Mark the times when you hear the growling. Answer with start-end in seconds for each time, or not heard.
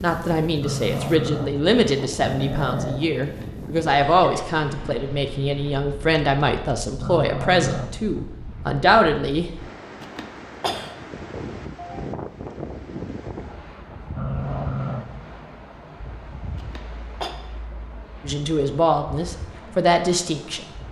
0.6-3.0, 7.0-8.1, 14.2-15.3.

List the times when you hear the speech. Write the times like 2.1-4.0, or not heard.
0.0-9.5, 18.2-20.8.